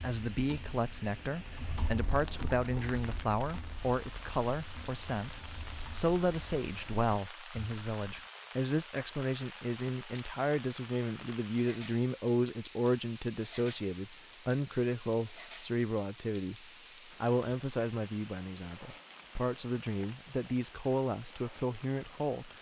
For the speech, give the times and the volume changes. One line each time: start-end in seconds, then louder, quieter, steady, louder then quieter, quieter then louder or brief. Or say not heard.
0.0-22.5 steady.